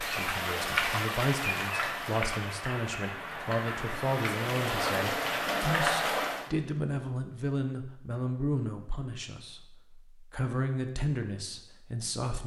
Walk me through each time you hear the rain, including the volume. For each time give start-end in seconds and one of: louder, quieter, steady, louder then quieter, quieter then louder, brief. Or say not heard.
0.0-6.5 quieter then louder.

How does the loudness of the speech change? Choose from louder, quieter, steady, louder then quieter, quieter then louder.
steady.